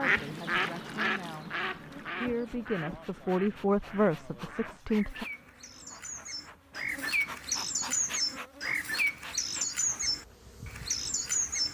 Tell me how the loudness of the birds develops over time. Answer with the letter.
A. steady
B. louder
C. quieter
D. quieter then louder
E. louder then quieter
D.